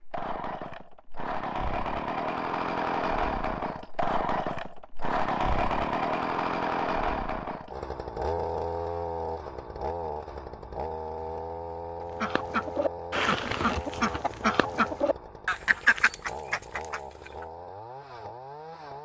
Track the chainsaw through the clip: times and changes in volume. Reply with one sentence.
The chainsaw can be heard from 0.0 to 19.0 s, getting quieter.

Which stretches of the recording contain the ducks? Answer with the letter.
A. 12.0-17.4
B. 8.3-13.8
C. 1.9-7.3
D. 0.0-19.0
A.